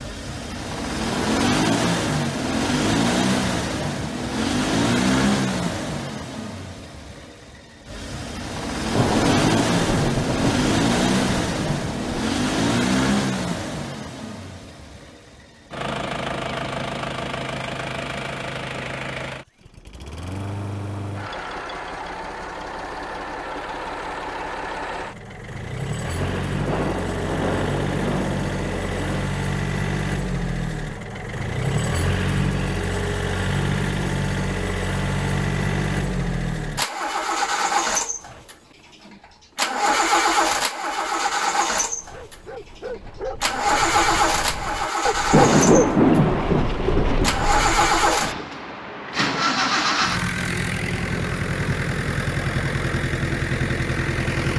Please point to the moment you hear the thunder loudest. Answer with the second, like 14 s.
46 s.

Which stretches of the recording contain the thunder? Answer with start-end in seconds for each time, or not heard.
8.9-12.2, 26.1-29.3, 45.3-47.4.